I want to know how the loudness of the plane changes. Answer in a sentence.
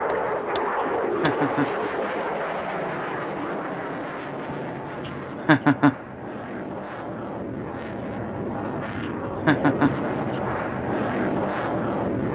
The volume of the plane goes down, then up.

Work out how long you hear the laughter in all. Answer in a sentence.
You can hear the laughter for 2 seconds altogether.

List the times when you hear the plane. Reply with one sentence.
The plane can be heard from 0.0 to 12.2 s.